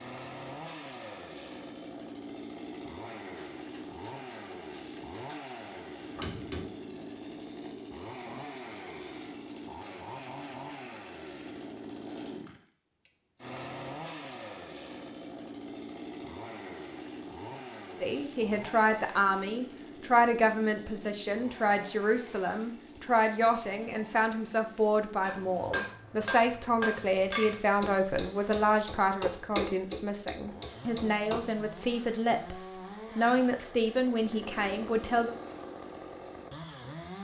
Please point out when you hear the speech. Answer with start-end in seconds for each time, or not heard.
18.0-35.4.